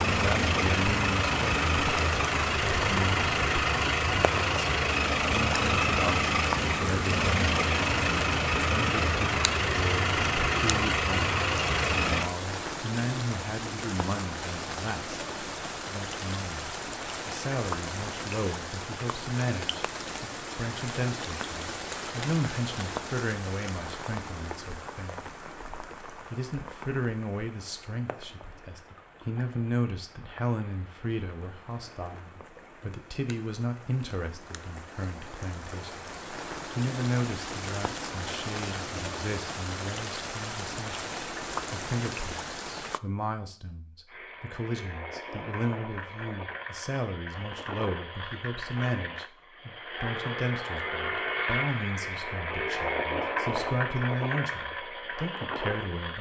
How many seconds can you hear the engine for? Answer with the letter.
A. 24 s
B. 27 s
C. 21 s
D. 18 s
A.